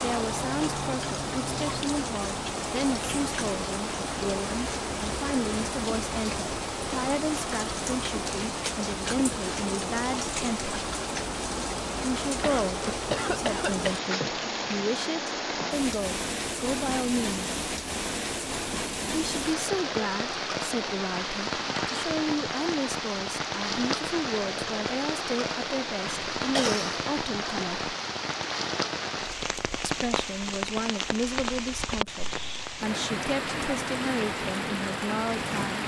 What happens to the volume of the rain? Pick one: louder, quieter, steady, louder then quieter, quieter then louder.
steady.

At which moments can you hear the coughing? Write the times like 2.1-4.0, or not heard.
12.4-13.9, 26.1-26.9.